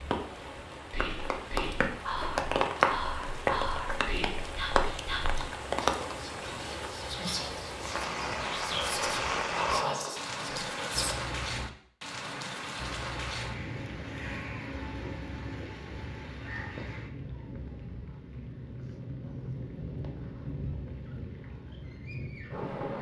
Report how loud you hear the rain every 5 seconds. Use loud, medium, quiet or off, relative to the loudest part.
loud, loud, medium, medium, medium.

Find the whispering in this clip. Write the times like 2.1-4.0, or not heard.
0.9-11.2.